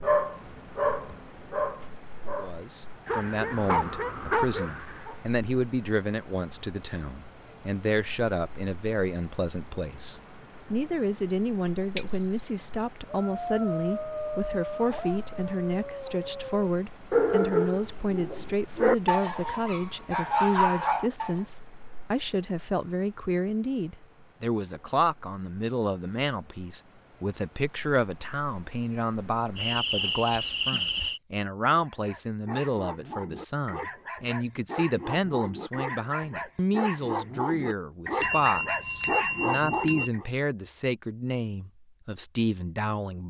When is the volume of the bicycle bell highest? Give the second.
12 s.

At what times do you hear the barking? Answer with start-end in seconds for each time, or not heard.
0.0-5.2, 13.1-21.4, 31.9-40.2.